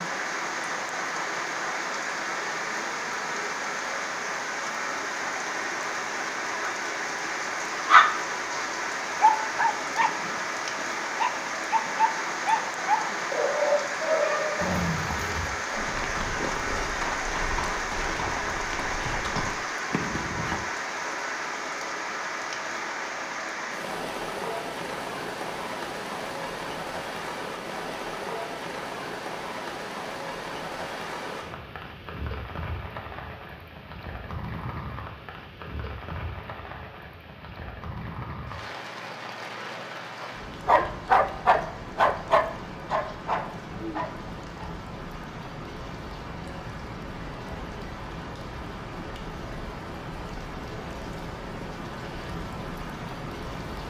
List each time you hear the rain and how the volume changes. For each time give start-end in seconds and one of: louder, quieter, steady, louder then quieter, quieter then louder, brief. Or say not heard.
0.0-53.8 quieter.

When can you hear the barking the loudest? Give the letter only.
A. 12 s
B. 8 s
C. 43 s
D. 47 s
B.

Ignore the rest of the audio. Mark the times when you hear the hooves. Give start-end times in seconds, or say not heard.
14.6-20.6.